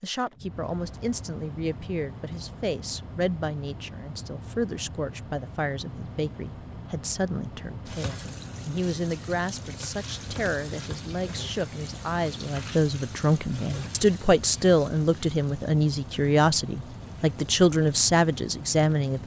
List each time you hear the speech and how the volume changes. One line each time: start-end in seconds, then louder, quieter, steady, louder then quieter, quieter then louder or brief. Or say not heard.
0.0-19.2 louder.